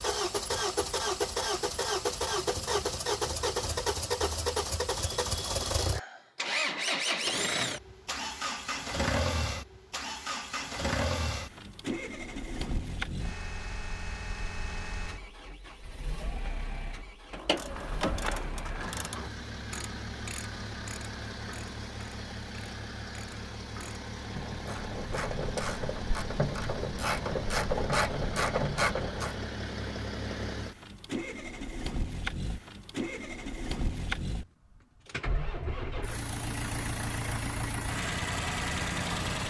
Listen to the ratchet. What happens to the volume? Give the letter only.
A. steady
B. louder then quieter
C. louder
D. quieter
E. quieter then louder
E.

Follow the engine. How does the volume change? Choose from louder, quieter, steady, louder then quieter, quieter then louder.
quieter then louder.